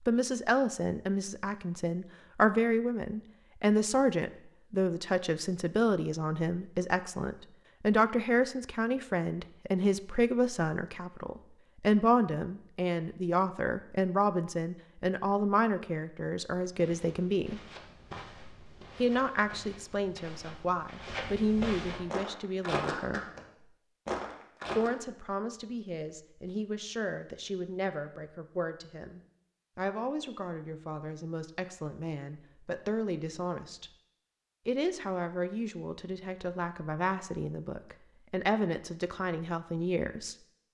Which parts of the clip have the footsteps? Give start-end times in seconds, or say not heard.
16.6-24.9.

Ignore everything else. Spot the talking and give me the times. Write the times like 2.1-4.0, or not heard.
0.1-17.6, 18.9-23.2, 24.8-33.9, 34.6-40.4.